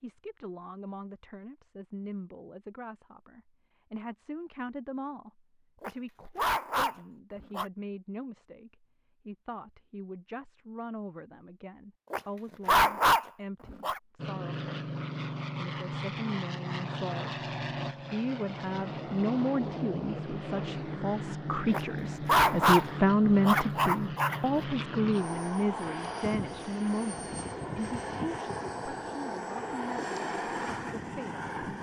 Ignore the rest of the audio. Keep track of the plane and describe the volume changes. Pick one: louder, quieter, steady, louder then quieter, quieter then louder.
steady.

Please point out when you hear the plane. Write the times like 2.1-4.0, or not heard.
14.2-31.7.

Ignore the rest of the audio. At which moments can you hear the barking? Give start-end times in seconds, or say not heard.
5.8-7.7, 12.1-14.0, 21.7-24.6.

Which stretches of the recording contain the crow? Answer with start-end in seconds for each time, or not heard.
not heard.